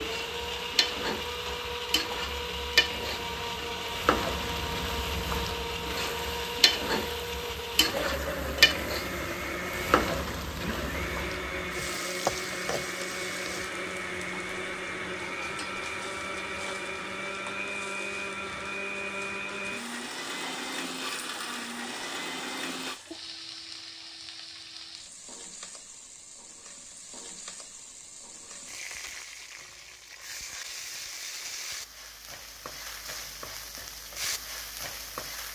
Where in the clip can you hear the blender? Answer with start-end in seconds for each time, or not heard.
0.0-23.0.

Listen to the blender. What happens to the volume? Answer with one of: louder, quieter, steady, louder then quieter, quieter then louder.
steady.